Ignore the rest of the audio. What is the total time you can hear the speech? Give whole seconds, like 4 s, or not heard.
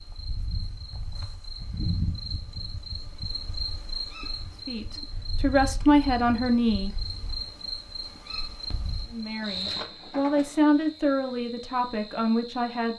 6 s.